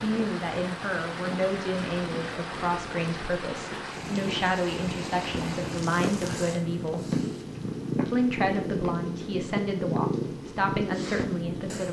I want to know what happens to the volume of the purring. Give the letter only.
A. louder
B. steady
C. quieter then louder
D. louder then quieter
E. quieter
A.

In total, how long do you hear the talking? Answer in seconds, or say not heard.
11 s.